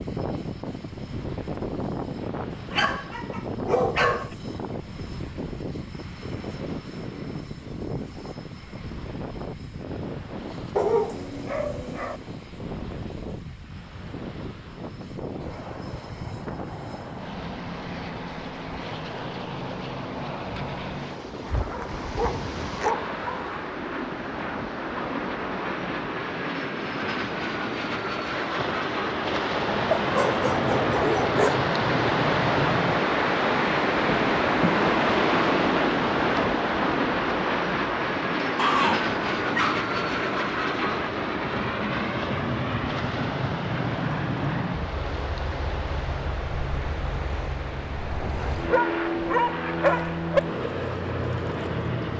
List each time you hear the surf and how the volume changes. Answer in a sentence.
You can hear the surf from 0.0 to 52.1 s, getting louder then quieter.